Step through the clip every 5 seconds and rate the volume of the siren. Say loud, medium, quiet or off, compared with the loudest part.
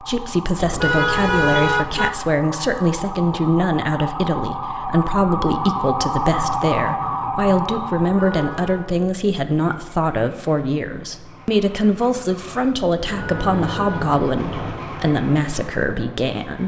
medium, loud, off, off.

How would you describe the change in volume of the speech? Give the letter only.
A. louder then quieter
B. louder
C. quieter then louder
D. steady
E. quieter
D.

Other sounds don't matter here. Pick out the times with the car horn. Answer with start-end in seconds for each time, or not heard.
0.6-2.2, 8.1-8.9, 13.2-14.2.